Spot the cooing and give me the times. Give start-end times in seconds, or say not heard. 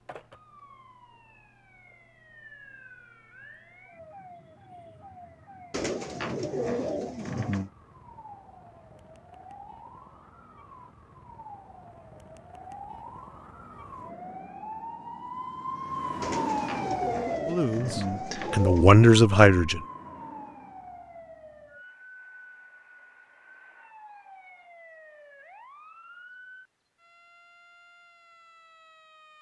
5.7-7.7, 16.2-18.9.